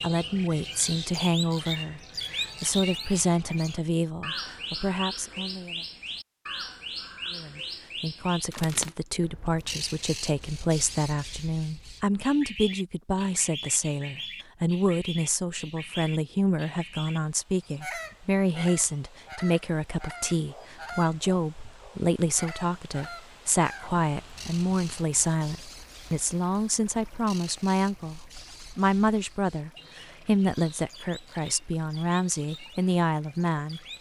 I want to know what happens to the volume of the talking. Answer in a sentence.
The volume of the talking stays about the same.